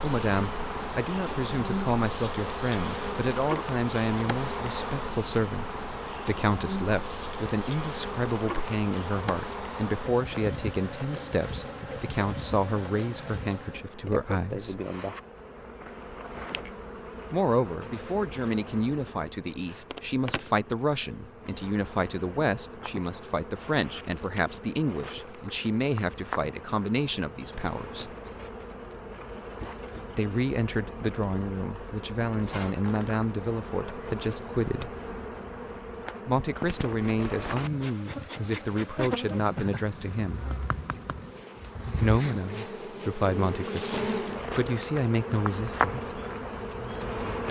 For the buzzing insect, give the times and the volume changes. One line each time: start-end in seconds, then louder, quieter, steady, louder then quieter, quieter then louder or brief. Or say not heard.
0.0-47.4 quieter then louder.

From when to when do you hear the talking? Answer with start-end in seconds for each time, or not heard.
0.0-14.8, 17.3-28.1, 30.1-34.9, 36.2-40.5, 42.0-46.2.